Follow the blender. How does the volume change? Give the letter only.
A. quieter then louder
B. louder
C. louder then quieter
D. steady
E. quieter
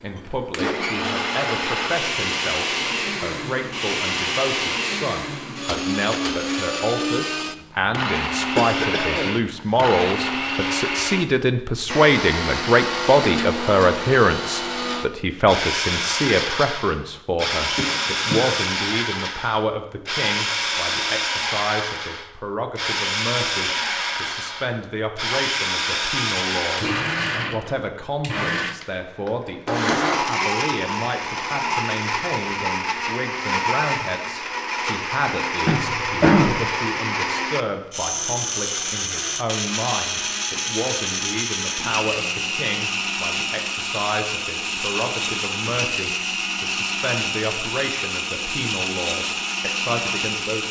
D.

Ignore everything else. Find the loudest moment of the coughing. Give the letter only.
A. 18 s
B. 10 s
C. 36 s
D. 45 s
C.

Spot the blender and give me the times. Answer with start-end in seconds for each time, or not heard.
0.0-50.6.